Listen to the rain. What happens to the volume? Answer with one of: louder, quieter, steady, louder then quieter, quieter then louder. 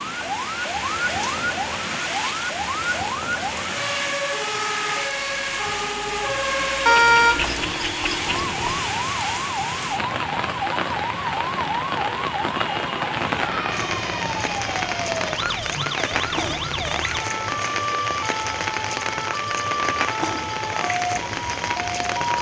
steady.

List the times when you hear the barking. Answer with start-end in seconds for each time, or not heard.
not heard.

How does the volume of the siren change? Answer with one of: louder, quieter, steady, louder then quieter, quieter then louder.
steady.